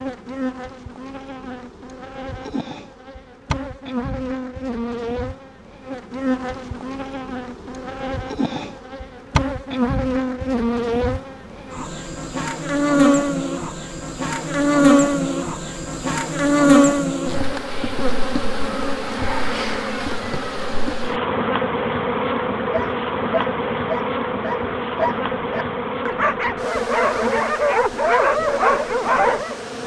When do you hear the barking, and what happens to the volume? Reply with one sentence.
The barking can be heard from 22.7 to 29.6 s, getting louder.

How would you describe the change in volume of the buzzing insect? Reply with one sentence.
The loudness of the buzzing insect goes up, then down.